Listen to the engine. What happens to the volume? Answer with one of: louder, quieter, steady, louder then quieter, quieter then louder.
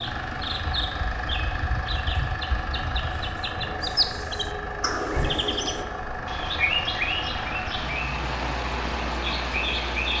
steady.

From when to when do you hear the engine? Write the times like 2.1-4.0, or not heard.
0.0-10.1.